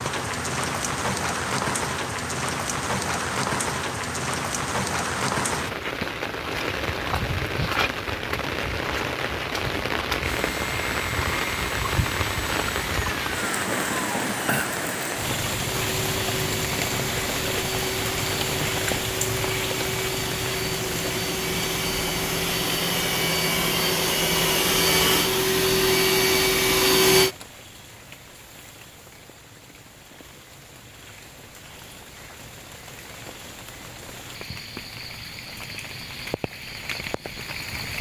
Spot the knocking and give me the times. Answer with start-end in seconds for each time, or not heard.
not heard.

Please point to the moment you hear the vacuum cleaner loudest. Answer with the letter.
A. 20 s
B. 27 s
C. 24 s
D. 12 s
B.